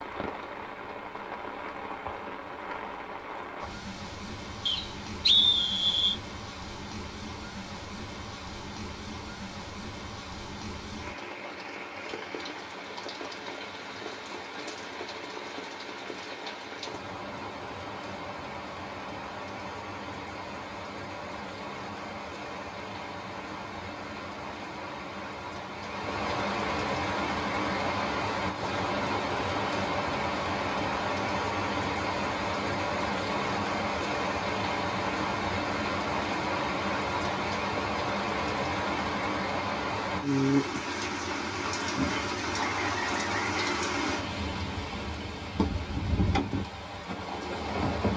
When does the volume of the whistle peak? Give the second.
5 s.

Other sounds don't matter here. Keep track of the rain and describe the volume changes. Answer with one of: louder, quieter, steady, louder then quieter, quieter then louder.
louder.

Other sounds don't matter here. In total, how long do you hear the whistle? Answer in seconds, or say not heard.
3 s.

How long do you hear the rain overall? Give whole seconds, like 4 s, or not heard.
48 s.